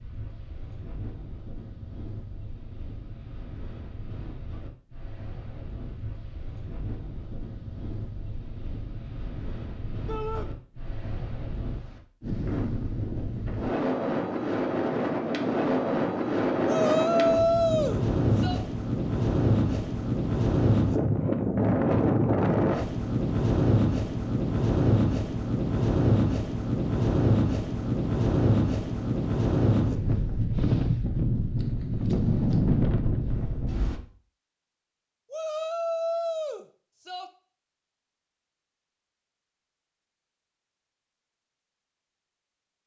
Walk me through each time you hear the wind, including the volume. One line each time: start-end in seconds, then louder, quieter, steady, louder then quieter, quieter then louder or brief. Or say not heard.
0.0-34.0 louder.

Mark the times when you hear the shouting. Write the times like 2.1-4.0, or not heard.
10.1-10.5, 16.6-18.6, 35.3-37.3.